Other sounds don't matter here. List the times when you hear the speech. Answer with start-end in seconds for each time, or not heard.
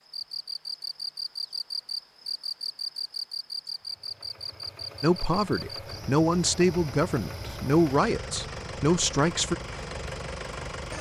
5.0-9.6.